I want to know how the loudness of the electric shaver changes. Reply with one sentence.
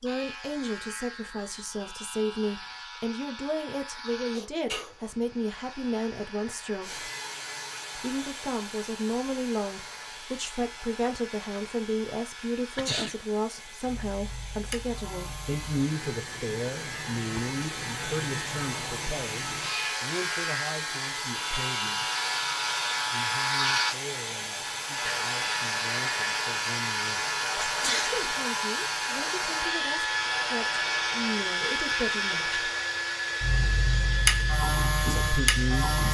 The loudness of the electric shaver goes up.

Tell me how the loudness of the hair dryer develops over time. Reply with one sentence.
The loudness of the hair dryer goes up.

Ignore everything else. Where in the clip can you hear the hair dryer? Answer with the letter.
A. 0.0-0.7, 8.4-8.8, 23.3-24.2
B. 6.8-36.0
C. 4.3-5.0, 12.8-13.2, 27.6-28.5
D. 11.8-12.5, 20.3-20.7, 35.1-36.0
B.